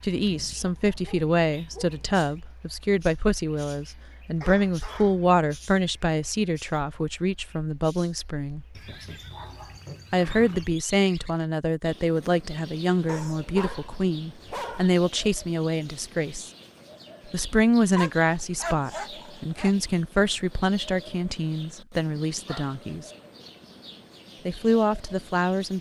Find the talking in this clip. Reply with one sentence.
You can hear the talking from 0.0 to 8.6 s, from 10.1 to 16.5 s, from 17.2 to 23.1 s and from 24.4 to 25.7 s.